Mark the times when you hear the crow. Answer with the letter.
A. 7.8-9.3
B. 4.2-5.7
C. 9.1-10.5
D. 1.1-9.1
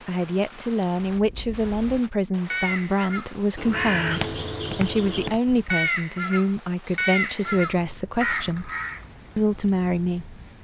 D.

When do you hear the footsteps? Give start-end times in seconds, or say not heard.
4.2-5.7.